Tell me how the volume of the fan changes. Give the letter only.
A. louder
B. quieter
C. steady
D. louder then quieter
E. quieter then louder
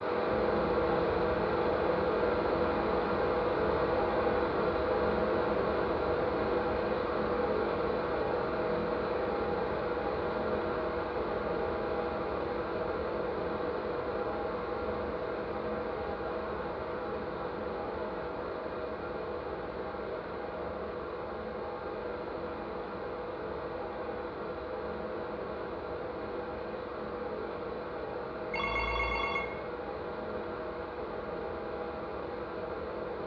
B.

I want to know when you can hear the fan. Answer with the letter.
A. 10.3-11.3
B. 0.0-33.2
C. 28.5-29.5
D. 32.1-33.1
B.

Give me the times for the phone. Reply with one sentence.
You can hear the phone from 28.5 to 29.5 s.